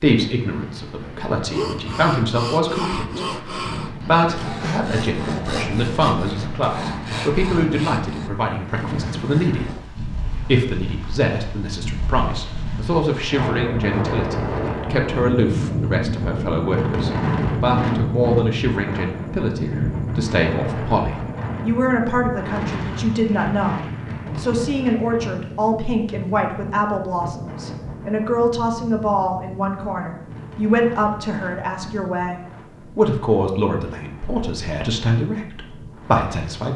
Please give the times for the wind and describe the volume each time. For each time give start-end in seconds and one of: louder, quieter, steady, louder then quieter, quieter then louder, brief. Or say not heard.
0.1-36.7 louder then quieter.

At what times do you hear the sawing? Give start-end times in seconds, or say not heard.
1.4-9.9.